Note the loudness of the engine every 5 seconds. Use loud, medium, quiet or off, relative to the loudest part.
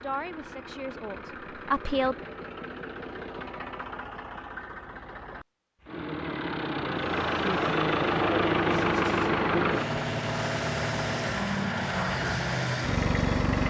quiet, loud, loud.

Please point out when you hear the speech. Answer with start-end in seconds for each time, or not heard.
0.0-2.2.